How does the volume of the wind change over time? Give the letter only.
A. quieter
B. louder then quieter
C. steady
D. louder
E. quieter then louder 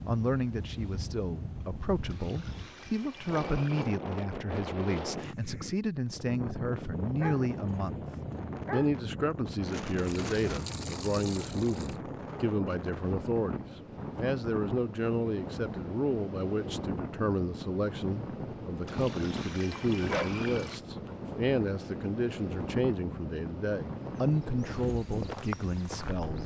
C.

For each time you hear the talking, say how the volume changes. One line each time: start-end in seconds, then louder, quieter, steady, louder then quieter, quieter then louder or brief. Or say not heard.
0.1-8.0 louder
8.7-26.4 steady.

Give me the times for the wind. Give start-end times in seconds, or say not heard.
0.0-26.4.